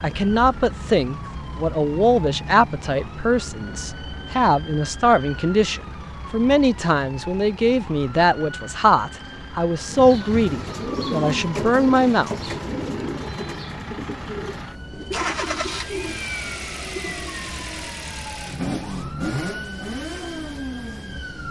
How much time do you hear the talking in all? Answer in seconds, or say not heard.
12 s.